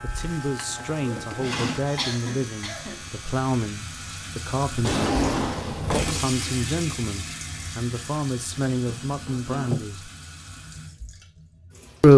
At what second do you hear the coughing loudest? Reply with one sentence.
The loudest moment of the coughing is at 2 seconds.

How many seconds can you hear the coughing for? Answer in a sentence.
You can hear the coughing for 2 seconds altogether.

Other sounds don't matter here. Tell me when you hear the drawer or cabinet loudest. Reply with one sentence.
The volume of the drawer or cabinet peaks at 5 seconds.